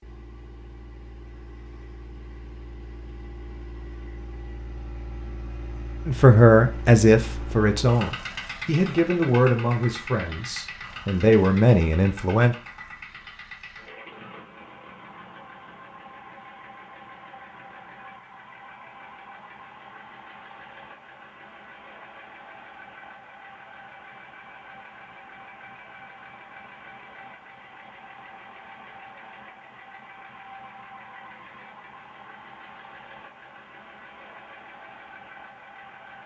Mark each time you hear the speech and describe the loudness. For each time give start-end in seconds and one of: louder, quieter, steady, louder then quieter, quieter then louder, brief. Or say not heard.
6.0-12.6 quieter then louder.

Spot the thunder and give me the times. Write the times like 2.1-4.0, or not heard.
not heard.